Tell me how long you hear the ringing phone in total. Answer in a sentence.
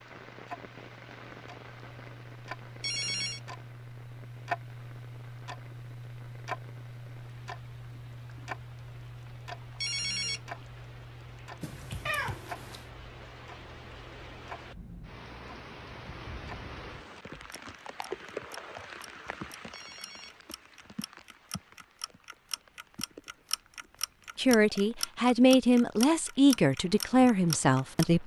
The ringing phone can be heard for 2 seconds in total.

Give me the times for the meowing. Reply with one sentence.
The meowing can be heard from 11.6 to 12.8 s.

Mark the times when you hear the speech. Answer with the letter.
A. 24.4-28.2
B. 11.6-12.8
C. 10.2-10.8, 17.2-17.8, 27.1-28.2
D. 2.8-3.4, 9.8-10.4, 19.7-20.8
A.